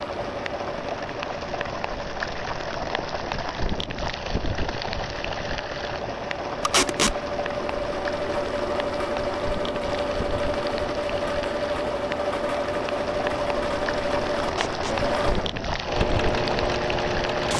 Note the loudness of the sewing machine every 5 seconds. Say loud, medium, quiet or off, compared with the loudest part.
medium, loud, loud, loud.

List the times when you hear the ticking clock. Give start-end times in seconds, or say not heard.
not heard.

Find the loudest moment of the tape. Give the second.
7 s.